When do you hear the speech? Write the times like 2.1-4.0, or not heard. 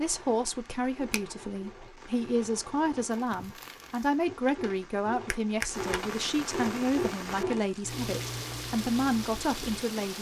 0.0-10.1.